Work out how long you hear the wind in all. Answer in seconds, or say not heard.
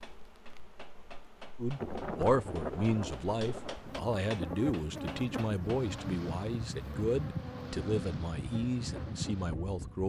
8 s.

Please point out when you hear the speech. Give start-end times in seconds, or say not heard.
1.6-10.0.